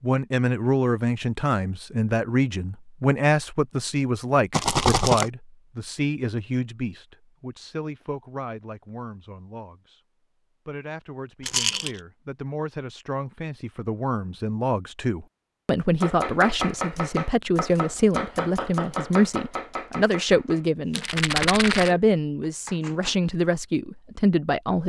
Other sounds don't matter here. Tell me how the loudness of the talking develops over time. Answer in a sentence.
The loudness of the talking goes down, then up.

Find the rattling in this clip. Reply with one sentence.
The rattling can be heard from 4.5 to 5.3 s, from 11.4 to 12.0 s and from 20.9 to 21.9 s.